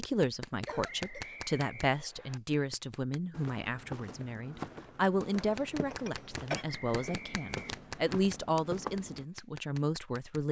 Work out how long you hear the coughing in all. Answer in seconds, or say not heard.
2 s.